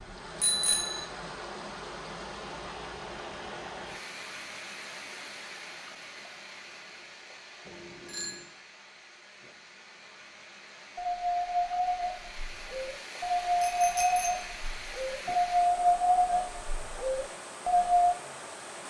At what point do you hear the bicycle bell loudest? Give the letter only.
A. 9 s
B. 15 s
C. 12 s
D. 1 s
D.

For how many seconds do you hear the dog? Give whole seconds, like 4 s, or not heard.
7 s.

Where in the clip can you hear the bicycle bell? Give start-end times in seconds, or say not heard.
0.4-1.1, 7.7-8.4, 13.6-14.3.